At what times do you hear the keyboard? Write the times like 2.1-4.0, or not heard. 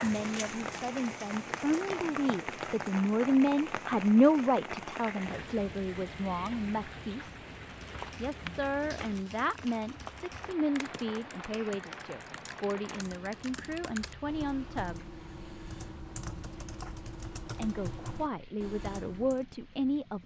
7.6-19.4.